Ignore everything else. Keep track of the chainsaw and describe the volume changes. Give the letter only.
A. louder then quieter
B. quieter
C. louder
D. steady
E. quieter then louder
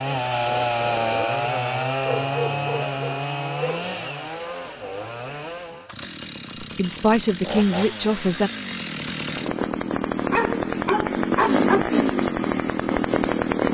E.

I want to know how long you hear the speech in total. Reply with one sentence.
You can hear the speech for 2 seconds altogether.